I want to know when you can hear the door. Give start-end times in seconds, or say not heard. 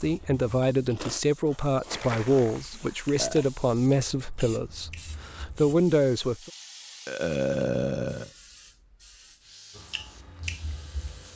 not heard.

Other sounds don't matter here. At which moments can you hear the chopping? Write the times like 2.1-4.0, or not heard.
not heard.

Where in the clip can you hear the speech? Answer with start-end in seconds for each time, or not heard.
0.0-6.5.